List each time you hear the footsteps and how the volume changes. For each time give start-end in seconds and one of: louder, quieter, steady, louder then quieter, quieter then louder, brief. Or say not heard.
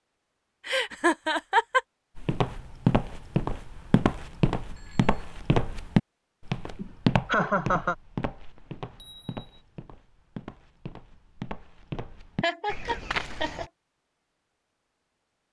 2.1-13.7 quieter then louder.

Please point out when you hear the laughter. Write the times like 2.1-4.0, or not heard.
0.7-1.8, 6.8-8.0, 12.4-13.7.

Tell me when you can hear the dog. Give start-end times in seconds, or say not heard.
not heard.